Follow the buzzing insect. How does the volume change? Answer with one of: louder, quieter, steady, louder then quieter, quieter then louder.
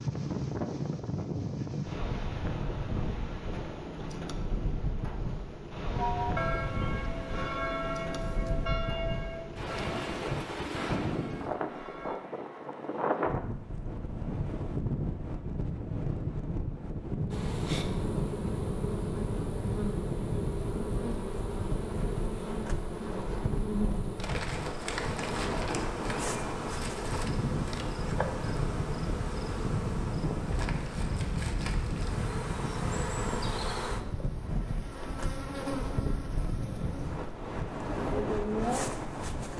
steady.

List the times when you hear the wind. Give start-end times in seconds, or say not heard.
0.0-39.5.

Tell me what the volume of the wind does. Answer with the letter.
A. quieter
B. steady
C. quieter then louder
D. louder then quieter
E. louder
B.